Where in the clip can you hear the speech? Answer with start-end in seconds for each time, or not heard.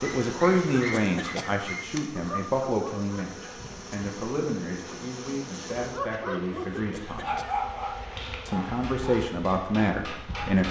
0.0-7.3, 8.4-10.6.